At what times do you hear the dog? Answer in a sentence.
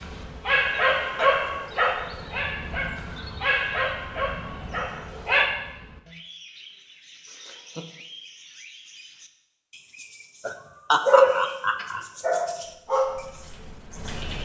The dog can be heard from 0.0 to 5.5 s and from 11.1 to 14.4 s.